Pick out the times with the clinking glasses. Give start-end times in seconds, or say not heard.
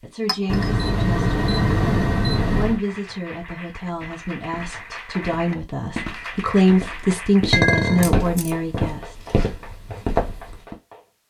0.2-0.7, 7.5-8.1.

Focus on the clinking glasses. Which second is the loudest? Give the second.
8 s.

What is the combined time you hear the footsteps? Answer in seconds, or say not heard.
7 s.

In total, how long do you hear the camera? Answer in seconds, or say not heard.
3 s.